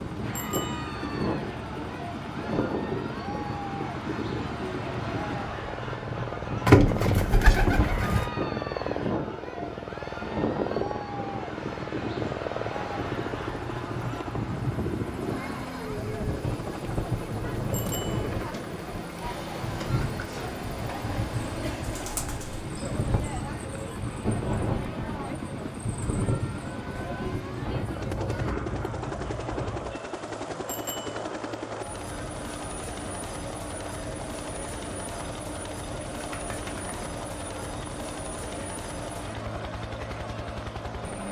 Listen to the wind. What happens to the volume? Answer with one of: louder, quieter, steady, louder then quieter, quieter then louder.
steady.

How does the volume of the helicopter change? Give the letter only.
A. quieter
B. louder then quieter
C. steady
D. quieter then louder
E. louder
C.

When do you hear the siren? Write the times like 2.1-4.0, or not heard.
not heard.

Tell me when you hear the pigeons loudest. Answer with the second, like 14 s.
7 s.